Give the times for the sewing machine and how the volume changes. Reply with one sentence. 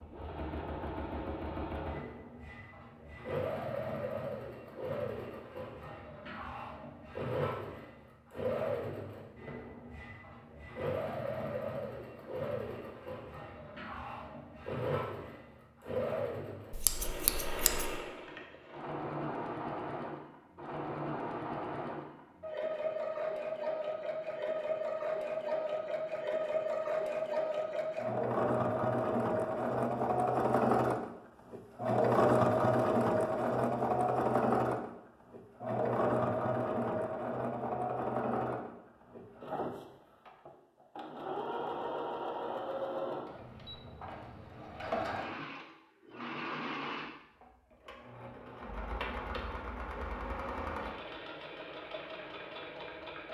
The sewing machine can be heard from 0.0 to 53.2 s, getting louder then quieter.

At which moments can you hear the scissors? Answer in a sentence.
The scissors can be heard from 16.7 to 18.0 s.